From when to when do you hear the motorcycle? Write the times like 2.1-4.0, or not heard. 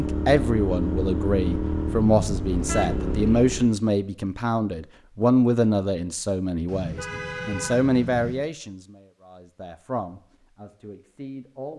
0.0-3.8.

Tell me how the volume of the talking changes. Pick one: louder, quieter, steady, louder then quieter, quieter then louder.
quieter.